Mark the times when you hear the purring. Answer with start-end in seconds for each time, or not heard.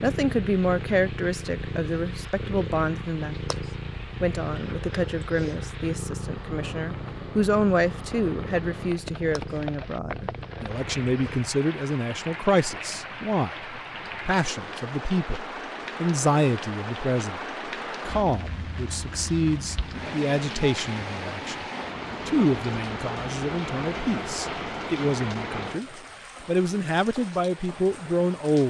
0.0-11.6.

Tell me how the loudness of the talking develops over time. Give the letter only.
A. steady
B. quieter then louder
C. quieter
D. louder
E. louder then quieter
A.